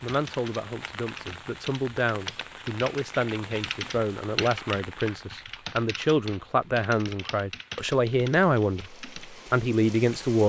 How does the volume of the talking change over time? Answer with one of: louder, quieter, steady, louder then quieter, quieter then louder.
louder.